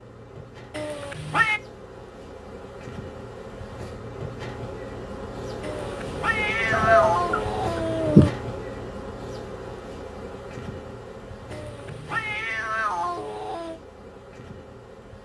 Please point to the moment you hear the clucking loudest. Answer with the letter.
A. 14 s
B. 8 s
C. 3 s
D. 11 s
B.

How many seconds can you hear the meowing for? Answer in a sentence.
The meowing can be heard for 6 seconds in total.